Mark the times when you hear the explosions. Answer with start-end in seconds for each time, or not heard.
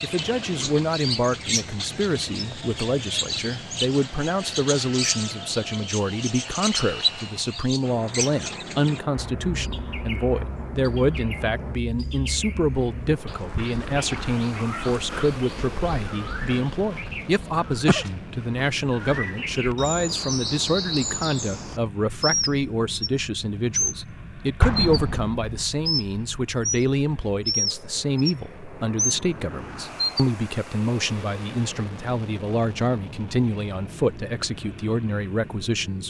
24.6-25.6.